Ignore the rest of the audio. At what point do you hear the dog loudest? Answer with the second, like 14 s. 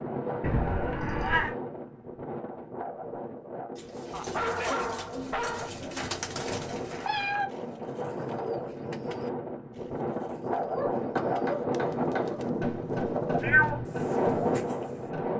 5 s.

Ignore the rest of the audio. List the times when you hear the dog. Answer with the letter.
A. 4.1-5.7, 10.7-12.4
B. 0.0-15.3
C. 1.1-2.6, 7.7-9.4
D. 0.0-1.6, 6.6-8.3
A.